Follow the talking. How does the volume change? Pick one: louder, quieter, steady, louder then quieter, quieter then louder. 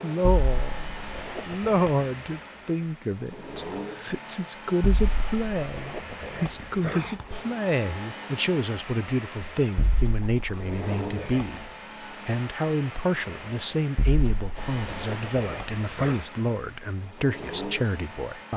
steady.